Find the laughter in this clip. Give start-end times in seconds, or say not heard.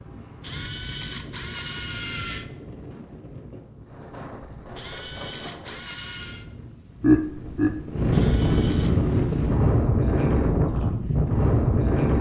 7.0-7.8.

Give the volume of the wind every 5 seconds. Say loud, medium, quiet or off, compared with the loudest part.
quiet, loud, loud.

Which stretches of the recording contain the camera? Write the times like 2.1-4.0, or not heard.
0.4-2.5, 4.8-6.5, 8.1-8.9.